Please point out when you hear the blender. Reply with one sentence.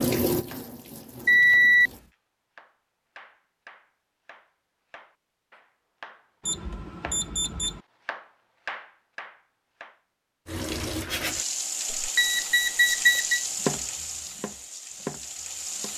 The blender can't be heard in this clip.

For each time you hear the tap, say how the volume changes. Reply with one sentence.
You can hear the tap briefly from 0.0 to 2.1 s; and from 10.4 to 15.9 s, getting quieter.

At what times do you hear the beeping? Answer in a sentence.
The beeping can be heard from 1.2 to 1.9 s, from 6.5 to 7.8 s and from 11.9 to 13.4 s.